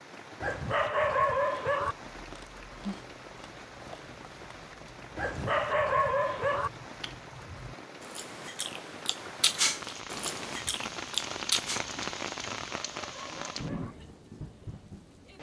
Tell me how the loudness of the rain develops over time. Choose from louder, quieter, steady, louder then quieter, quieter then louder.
louder.